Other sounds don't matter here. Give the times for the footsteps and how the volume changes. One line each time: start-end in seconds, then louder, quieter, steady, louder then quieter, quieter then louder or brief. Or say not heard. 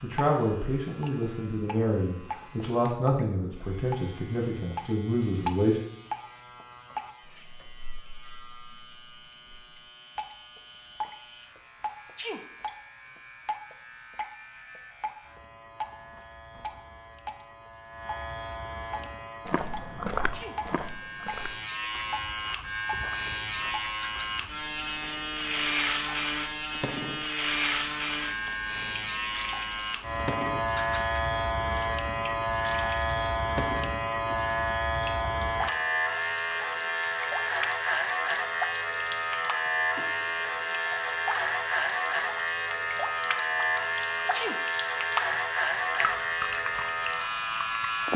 18.9-24.6 quieter.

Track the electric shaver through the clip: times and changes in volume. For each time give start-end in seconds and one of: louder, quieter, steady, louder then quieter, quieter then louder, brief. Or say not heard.
0.0-48.1 louder.